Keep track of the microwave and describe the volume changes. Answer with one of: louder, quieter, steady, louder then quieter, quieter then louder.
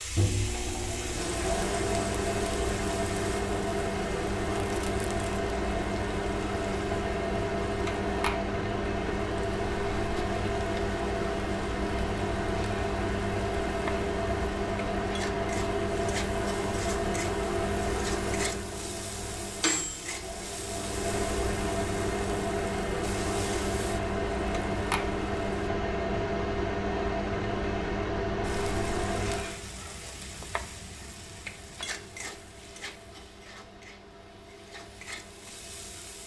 quieter.